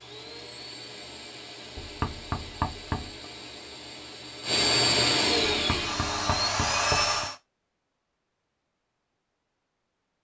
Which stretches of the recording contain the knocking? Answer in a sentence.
The knocking can be heard from 1.8 to 3.2 s and from 5.5 to 7.2 s.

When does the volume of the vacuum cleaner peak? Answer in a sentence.
The loudest moment of the vacuum cleaner is at 5 seconds.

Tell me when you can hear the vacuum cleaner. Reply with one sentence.
You can hear the vacuum cleaner from 0.0 to 7.3 s.